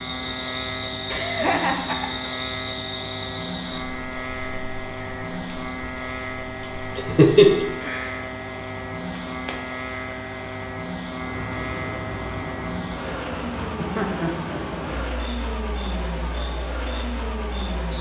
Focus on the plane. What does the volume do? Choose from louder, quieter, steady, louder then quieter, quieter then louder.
steady.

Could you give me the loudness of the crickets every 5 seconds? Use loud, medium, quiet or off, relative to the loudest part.
loud, loud, loud, medium.